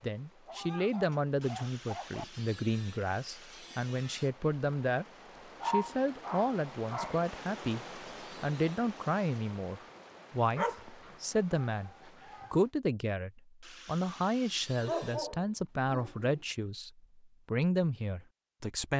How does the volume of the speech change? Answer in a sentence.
The loudness of the speech stays about the same.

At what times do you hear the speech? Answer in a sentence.
The speech can be heard from 0.0 to 5.0 s, from 5.7 to 11.9 s and from 12.5 to 18.9 s.